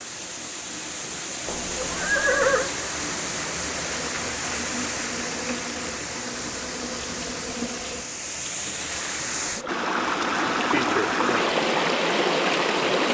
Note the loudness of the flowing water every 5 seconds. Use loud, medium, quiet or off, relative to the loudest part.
medium, medium, loud.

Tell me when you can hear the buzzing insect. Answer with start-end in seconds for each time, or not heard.
3.9-8.1.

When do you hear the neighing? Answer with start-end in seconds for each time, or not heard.
1.4-2.7.